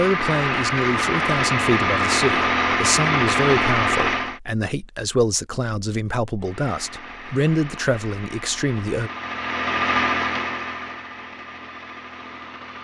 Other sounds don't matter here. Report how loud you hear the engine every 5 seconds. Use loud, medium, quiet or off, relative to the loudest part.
loud, medium, medium.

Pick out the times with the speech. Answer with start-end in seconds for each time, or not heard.
0.0-9.1.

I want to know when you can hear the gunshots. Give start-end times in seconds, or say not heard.
not heard.